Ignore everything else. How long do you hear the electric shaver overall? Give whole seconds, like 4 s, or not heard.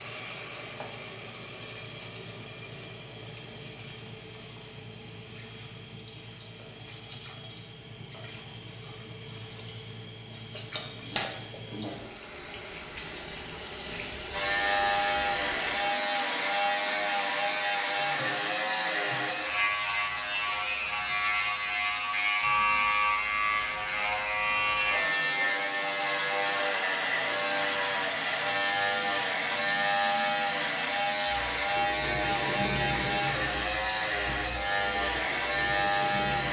22 s.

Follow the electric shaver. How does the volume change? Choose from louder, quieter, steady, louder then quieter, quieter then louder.
steady.